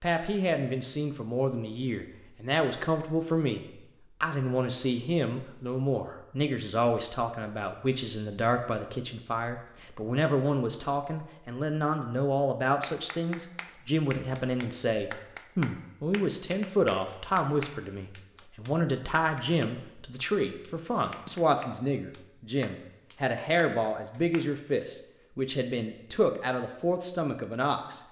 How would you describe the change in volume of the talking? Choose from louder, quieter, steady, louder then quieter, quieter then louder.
steady.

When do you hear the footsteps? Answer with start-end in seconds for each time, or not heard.
not heard.